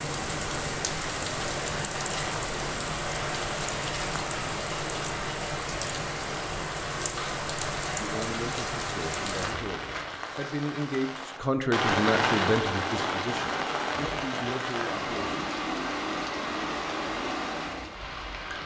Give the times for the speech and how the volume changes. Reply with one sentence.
You can hear the speech from 8.0 to 15.6 s, getting louder then quieter.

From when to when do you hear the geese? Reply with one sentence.
The geese can't be heard in this clip.